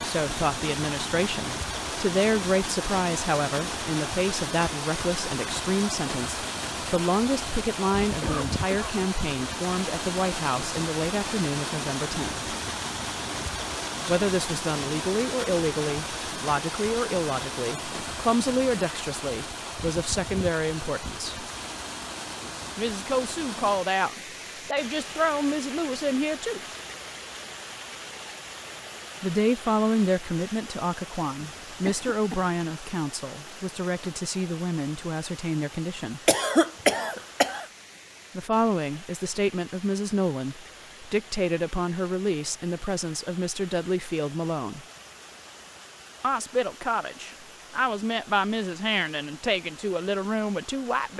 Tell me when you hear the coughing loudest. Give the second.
37 s.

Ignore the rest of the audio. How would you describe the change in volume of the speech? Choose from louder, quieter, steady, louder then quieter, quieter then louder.
steady.